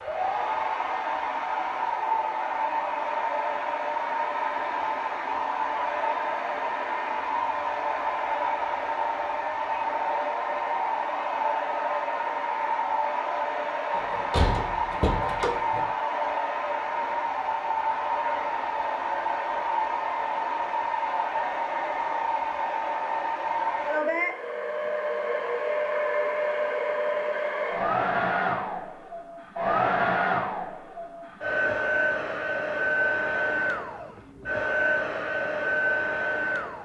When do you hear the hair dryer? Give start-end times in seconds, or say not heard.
0.0-36.8.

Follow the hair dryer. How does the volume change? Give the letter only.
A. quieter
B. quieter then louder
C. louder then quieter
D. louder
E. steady
E.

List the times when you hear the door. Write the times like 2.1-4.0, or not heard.
13.9-15.9.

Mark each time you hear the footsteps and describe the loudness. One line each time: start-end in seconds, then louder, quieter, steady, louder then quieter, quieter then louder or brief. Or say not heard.
not heard.